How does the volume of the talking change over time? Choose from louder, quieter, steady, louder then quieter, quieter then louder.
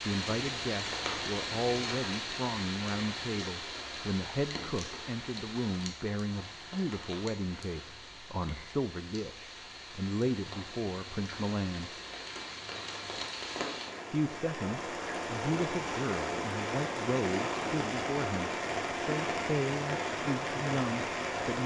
steady.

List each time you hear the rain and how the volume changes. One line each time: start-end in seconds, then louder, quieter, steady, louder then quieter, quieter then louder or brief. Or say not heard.
0.0-21.6 quieter then louder.